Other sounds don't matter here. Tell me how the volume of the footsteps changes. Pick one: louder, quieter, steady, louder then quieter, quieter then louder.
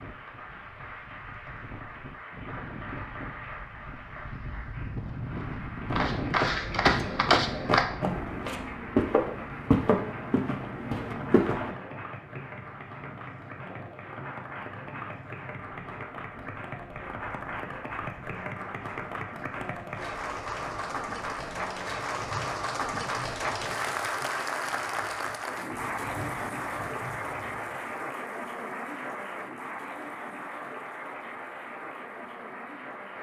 quieter.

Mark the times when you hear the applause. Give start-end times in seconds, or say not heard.
0.0-33.1.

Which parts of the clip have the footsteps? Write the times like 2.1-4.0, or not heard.
5.9-11.8.